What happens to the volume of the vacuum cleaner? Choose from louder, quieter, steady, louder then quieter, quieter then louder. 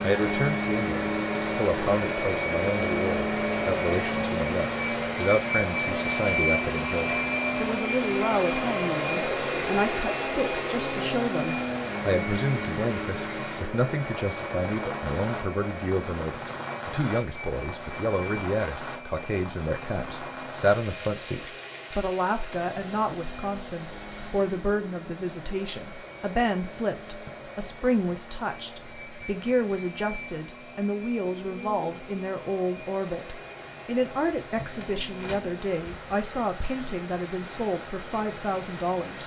quieter.